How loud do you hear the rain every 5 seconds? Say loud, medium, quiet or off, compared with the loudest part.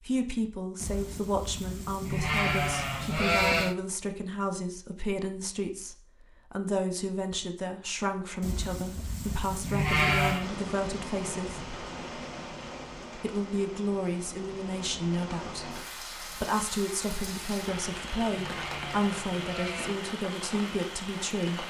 off, off, loud, loud, loud.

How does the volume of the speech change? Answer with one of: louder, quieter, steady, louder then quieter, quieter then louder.
steady.